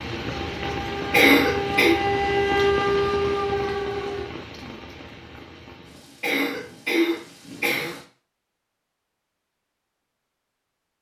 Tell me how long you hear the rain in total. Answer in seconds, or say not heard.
8 s.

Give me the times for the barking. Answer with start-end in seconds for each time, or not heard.
not heard.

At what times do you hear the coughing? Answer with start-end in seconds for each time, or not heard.
1.1-1.9, 6.2-8.0.